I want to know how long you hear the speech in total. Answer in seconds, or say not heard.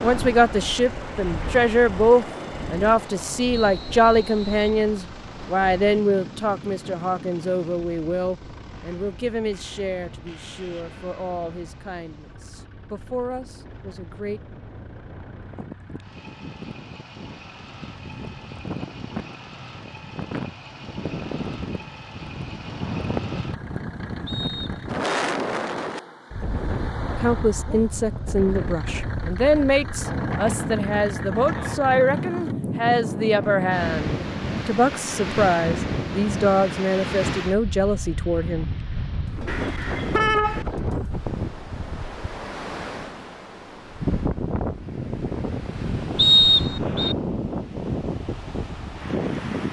26 s.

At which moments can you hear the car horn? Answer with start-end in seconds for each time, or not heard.
39.5-40.6.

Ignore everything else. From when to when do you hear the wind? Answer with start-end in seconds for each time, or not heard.
0.0-49.6.